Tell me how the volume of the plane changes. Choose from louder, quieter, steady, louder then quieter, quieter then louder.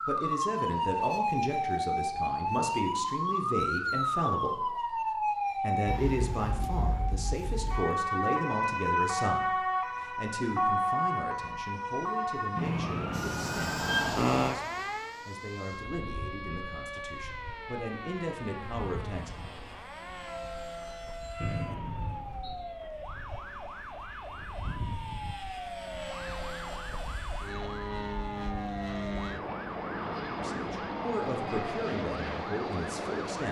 louder.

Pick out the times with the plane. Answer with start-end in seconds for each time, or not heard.
13.1-33.4.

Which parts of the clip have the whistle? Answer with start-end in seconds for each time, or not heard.
21.4-22.6.